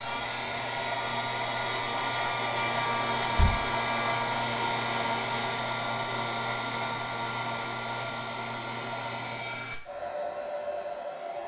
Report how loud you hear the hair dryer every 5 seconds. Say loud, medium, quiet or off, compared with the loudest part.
loud, loud, medium.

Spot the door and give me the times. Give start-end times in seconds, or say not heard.
3.2-3.8.